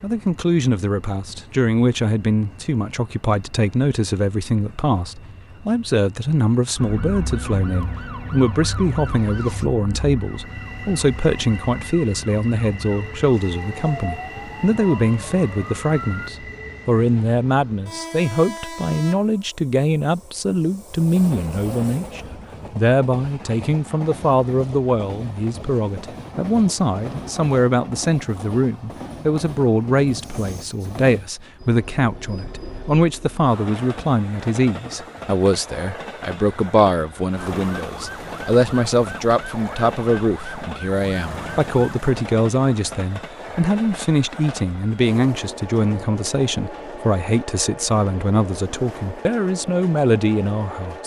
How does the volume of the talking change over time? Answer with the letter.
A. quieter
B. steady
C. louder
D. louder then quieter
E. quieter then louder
B.